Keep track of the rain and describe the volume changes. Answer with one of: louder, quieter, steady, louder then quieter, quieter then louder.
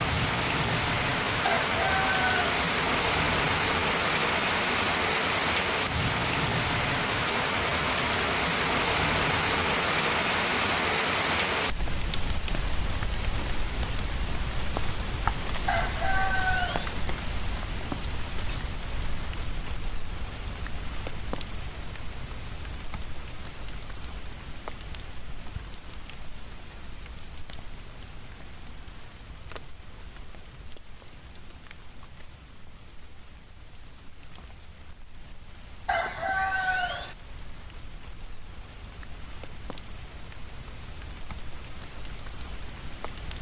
quieter.